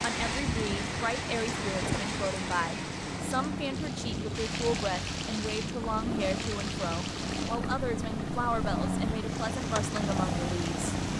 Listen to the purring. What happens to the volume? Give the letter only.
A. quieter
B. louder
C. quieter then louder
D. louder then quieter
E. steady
B.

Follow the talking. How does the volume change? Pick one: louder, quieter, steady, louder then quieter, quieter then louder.
steady.